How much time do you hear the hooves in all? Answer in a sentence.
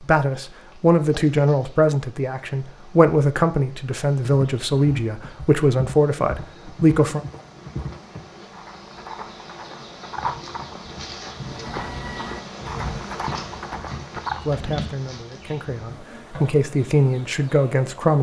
You can hear the hooves for 10 seconds altogether.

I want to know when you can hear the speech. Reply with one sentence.
The speech can be heard from 0.0 to 7.2 s and from 14.4 to 18.1 s.